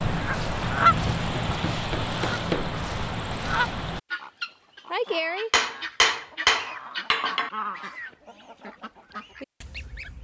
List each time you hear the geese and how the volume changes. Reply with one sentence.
You can hear the geese from 0.0 to 10.1 s, getting quieter.